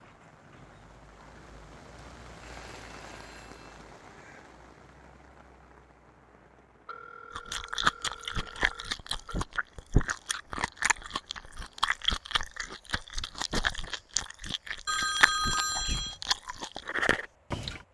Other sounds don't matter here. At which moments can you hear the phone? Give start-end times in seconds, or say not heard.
2.4-3.6, 6.8-9.4, 14.8-16.2.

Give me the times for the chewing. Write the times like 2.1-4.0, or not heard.
7.3-17.8.